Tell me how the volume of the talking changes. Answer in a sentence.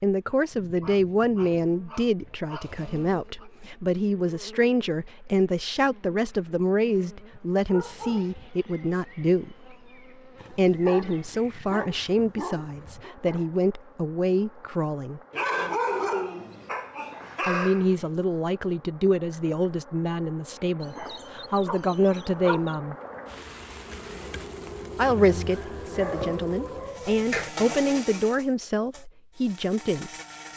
The volume of the talking stays about the same.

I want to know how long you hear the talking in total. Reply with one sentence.
You can hear the talking for 25 seconds altogether.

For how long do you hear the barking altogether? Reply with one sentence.
You can hear the barking for 13 seconds altogether.